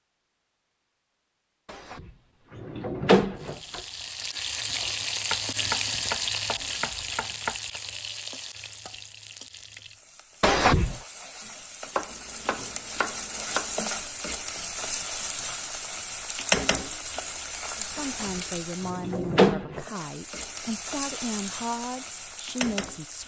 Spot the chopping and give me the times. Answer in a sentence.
The chopping can be heard from 5.3 to 7.8 s and from 11.9 to 13.8 s.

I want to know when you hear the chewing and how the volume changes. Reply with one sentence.
The chewing can't be heard in this clip.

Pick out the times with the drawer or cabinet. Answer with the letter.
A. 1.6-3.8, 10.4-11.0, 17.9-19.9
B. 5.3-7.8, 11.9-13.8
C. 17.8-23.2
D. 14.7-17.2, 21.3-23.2
A.